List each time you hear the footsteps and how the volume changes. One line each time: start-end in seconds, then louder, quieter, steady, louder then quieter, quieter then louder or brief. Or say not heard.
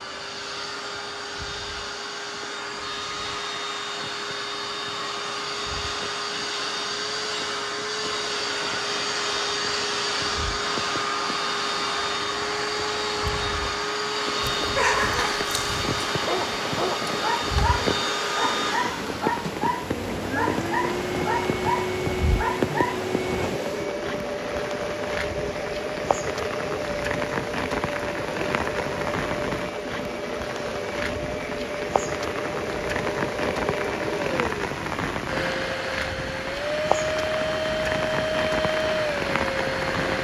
not heard.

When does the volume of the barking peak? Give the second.
15 s.